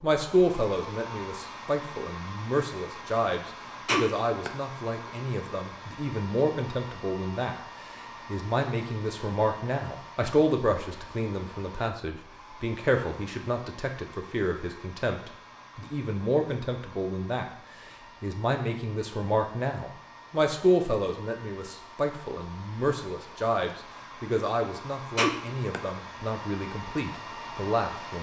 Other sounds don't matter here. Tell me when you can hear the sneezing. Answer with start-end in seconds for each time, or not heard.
3.9-4.5, 25.1-25.8.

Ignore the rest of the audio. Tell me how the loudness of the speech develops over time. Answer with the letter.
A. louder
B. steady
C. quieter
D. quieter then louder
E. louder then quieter
B.